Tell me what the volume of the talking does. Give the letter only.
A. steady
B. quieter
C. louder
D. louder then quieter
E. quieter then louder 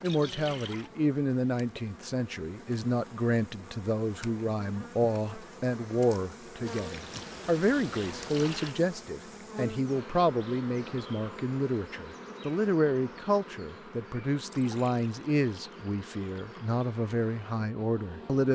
A.